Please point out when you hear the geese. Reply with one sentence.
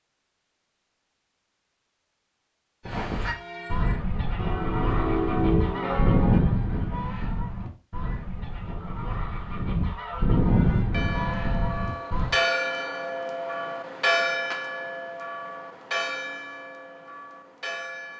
The geese can be heard from 2.9 to 12.3 s.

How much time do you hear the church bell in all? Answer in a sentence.
The church bell can be heard for 11 seconds in total.